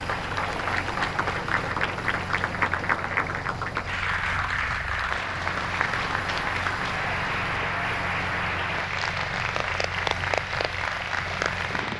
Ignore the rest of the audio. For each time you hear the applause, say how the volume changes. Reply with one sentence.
You can hear the applause from 0.0 to 11.9 s, at a steady volume.